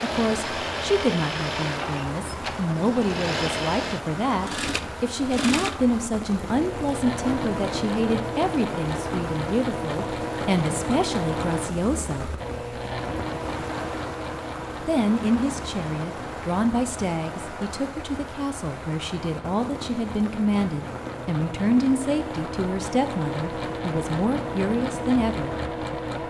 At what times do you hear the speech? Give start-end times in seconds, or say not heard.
0.0-12.2, 14.8-25.6.